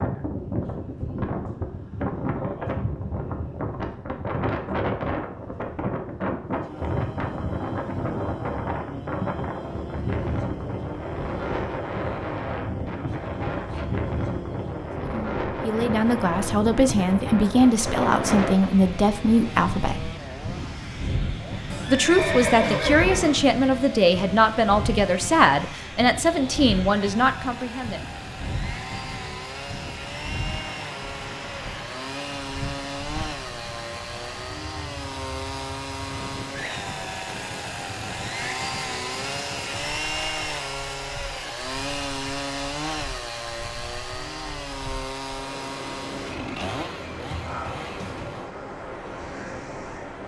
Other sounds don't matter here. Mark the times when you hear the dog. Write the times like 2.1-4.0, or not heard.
not heard.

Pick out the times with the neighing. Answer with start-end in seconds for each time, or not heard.
21.7-23.4.